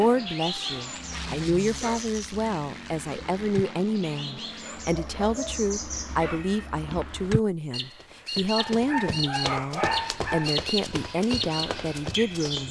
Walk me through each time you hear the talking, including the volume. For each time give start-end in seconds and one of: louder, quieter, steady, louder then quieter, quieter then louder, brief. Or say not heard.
0.0-12.6 steady.